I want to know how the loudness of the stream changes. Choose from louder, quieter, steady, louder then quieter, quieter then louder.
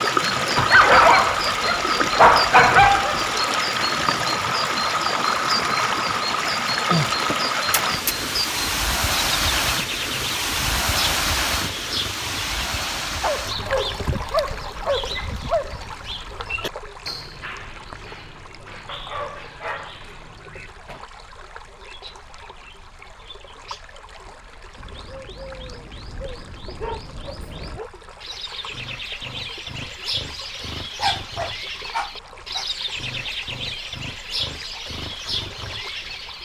quieter.